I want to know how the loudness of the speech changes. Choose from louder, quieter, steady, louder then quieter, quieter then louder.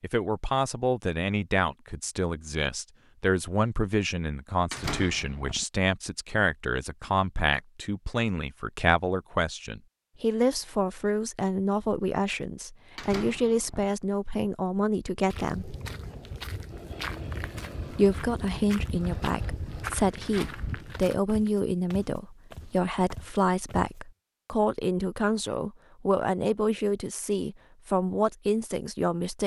steady.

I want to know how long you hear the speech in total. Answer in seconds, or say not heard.
27 s.